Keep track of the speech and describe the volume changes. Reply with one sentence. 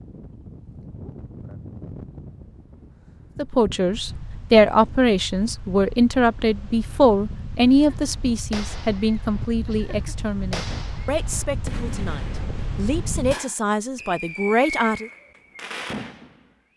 The volume of the speech goes down, then up.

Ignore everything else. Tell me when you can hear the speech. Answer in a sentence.
The speech can be heard from 3.4 to 15.1 s.